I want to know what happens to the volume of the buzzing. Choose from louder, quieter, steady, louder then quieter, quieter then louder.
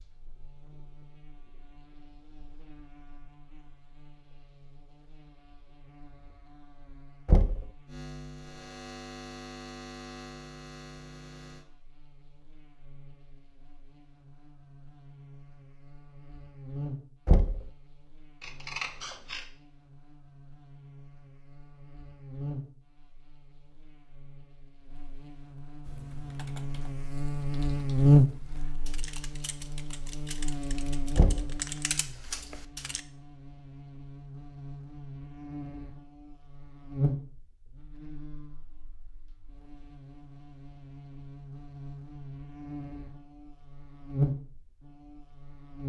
louder then quieter.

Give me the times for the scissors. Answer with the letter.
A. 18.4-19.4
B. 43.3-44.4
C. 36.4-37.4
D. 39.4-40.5
A.